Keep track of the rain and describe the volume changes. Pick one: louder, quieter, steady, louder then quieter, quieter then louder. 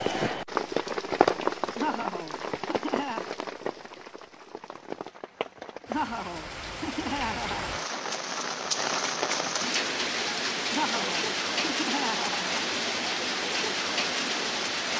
quieter then louder.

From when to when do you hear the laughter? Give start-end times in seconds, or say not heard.
1.8-3.3, 5.9-7.8, 10.7-12.7.